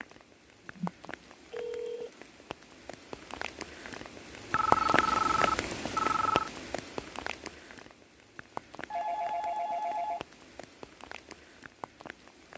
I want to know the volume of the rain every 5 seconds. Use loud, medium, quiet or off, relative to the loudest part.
loud, loud, quiet.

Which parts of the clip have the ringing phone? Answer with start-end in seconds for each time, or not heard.
0.8-2.1, 4.5-6.5, 8.9-10.2.